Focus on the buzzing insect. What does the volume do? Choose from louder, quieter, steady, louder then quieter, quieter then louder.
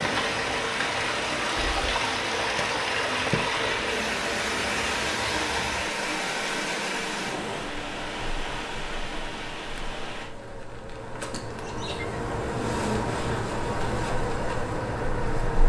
louder.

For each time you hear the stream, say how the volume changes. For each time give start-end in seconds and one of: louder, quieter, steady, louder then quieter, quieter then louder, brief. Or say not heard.
0.0-10.3 quieter.